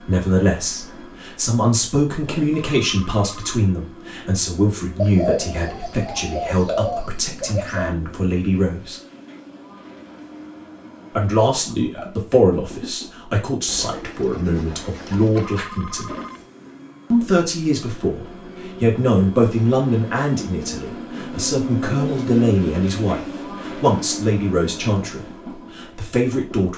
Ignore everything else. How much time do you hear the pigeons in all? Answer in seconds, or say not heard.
5 s.